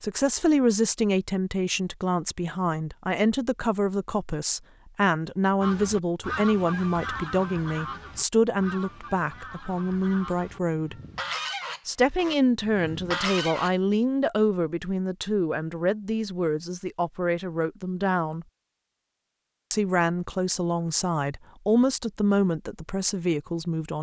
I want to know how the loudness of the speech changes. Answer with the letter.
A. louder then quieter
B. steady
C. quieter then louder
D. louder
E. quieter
B.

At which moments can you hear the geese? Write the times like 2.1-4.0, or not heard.
5.6-13.7.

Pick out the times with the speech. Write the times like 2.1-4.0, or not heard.
0.0-10.9, 11.8-18.4, 19.7-23.9.